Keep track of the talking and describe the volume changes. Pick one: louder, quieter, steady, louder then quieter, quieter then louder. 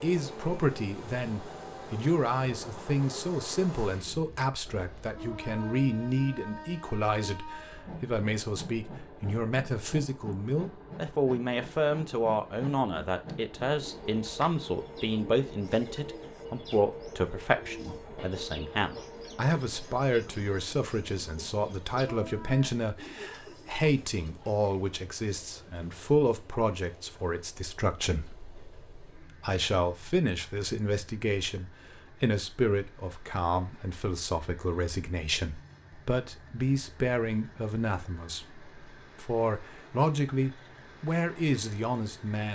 steady.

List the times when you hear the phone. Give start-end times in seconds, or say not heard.
not heard.